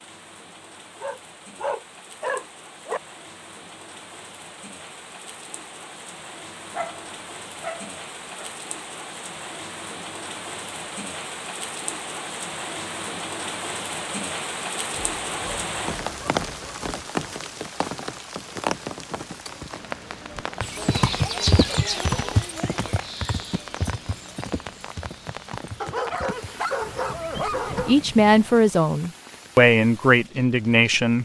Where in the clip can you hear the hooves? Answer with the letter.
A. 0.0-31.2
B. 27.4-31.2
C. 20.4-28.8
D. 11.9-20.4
C.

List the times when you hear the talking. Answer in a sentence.
You can hear the talking from 27.4 to 31.2 s.